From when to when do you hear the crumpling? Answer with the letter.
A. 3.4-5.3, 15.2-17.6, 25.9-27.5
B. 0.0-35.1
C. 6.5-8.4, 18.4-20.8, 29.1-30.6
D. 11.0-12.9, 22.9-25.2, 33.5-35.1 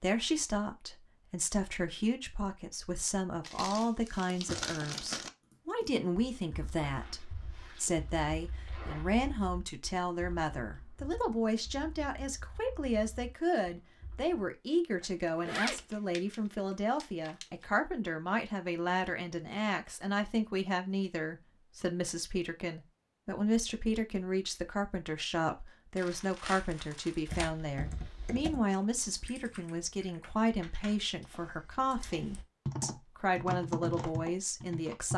A.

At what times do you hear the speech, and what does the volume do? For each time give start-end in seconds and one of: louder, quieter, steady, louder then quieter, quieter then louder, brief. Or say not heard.
0.0-35.1 steady.